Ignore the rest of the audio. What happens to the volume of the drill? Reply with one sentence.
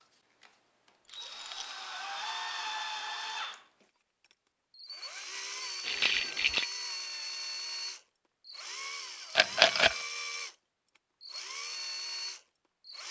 The loudness of the drill stays about the same.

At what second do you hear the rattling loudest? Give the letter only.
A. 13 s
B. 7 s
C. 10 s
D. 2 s
C.